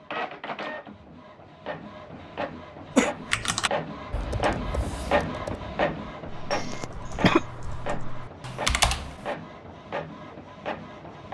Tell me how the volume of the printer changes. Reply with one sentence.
The loudness of the printer goes up, then down.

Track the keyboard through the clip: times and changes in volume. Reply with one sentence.
You can hear the keyboard from 3.0 to 9.3 s, getting quieter then louder.